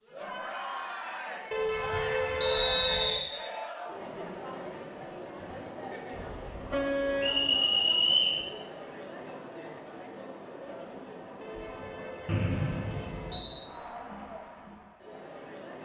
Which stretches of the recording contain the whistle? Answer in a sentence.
You can hear the whistle from 2.4 to 3.3 s, from 7.2 to 8.4 s and from 12.2 to 13.6 s.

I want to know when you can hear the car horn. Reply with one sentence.
You can hear the car horn from 1.5 to 3.2 s, from 6.1 to 7.4 s and from 11.4 to 13.4 s.